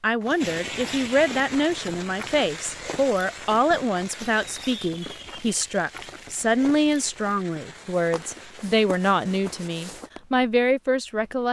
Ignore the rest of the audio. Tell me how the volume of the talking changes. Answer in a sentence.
The loudness of the talking stays about the same.